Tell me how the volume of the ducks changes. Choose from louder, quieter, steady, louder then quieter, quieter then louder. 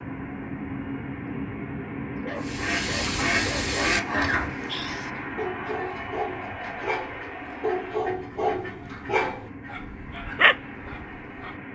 quieter.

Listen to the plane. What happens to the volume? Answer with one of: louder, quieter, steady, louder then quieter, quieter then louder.
quieter.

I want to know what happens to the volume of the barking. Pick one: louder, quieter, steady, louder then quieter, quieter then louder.
louder.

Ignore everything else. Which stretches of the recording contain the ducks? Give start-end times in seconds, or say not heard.
2.4-9.8.